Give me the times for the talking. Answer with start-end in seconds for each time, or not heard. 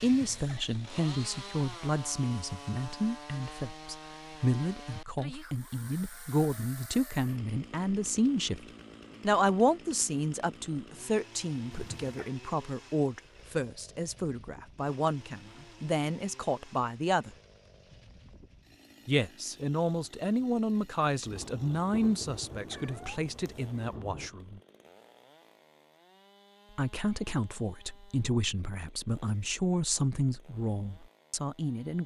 0.0-17.3, 19.1-24.6, 26.8-32.0.